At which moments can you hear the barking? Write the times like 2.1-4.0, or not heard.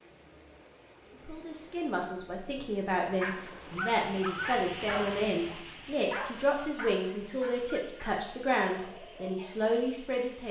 3.1-9.8.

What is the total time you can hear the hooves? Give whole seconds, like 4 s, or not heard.
not heard.